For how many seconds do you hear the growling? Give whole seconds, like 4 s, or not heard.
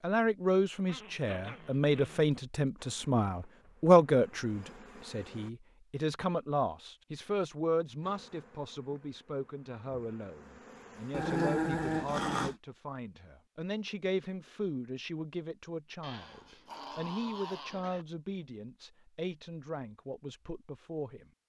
5 s.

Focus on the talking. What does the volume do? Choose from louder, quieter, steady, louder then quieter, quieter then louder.
quieter.